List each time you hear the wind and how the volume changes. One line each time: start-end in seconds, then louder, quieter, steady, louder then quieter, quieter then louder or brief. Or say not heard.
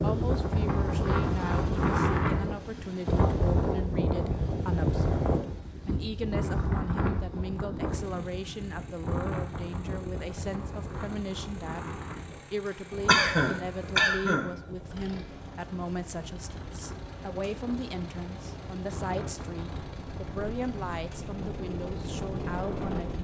0.0-23.1 quieter then louder.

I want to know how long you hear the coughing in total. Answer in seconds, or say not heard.
2 s.